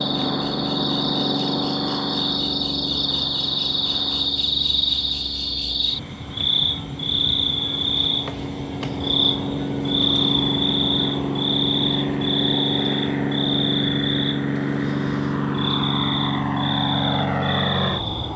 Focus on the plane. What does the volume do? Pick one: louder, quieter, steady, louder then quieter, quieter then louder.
quieter then louder.